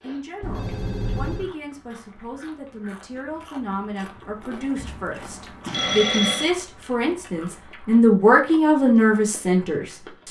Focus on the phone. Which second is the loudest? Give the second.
6 s.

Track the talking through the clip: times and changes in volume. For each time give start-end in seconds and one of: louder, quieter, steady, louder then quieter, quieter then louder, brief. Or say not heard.
0.0-10.2 louder.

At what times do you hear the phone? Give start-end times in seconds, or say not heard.
0.4-1.5, 5.7-6.5.